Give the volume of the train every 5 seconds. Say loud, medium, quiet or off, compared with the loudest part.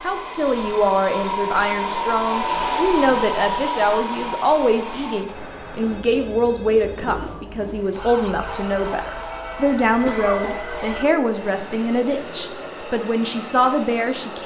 loud, medium, medium.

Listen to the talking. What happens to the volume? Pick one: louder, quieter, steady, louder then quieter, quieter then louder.
steady.